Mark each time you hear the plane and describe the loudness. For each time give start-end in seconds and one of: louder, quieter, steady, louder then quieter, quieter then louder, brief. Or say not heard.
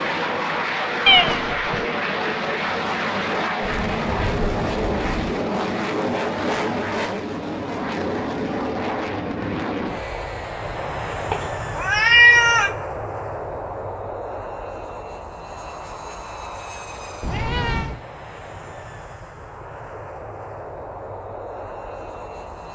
0.0-22.7 quieter.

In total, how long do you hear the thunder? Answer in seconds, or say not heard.
2 s.